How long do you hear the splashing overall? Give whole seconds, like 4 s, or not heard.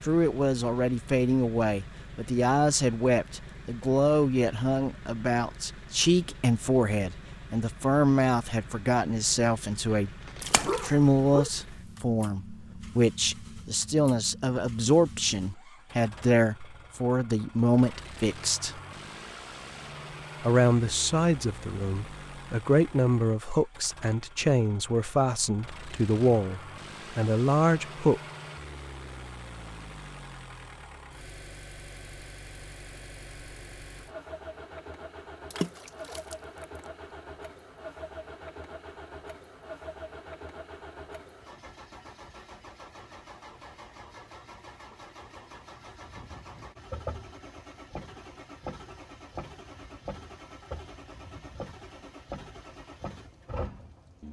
2 s.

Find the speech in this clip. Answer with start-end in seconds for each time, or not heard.
0.0-10.1, 10.8-18.8, 20.4-28.2.